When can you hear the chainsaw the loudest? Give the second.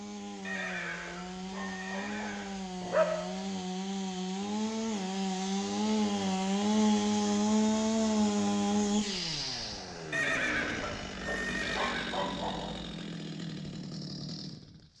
7 s.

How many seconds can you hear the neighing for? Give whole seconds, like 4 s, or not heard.
4 s.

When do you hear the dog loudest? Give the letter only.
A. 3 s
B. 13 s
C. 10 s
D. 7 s
A.